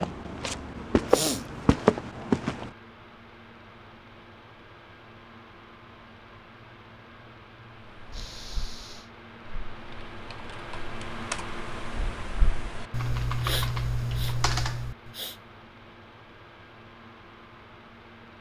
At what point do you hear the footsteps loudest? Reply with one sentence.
The loudest moment of the footsteps is at 2 seconds.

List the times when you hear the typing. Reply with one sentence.
The typing can be heard from 7.8 to 15.1 s.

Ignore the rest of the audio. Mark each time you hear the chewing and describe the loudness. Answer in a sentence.
You can't hear the chewing here.